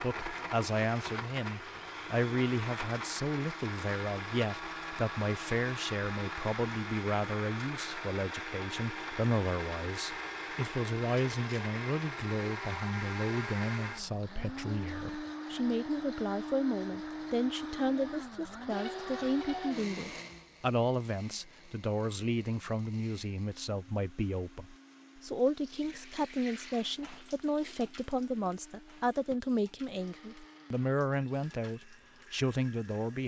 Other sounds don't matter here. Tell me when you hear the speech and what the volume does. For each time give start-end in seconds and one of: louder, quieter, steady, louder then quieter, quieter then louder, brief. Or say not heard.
0.0-33.2 steady.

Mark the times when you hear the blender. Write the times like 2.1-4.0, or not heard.
0.0-33.2.